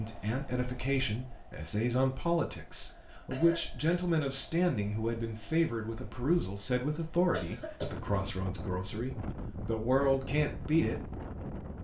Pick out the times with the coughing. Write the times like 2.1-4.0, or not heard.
2.9-4.0, 7.3-8.0.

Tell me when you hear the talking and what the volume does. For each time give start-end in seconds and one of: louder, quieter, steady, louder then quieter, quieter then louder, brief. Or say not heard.
0.0-11.1 steady.